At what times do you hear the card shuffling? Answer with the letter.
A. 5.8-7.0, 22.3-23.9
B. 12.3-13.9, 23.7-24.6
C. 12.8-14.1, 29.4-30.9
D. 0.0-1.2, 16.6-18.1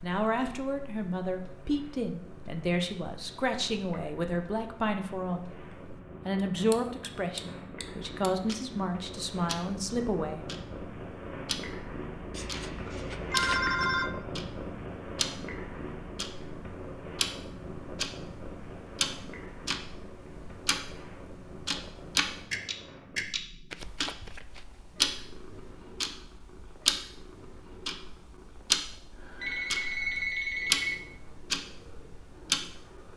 B.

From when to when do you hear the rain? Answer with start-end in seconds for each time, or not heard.
not heard.